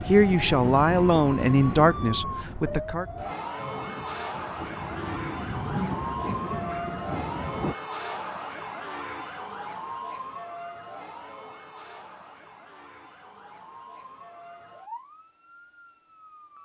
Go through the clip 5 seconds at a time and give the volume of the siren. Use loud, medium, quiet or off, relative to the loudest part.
loud, loud, medium, quiet.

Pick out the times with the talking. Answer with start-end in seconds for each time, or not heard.
0.1-3.0.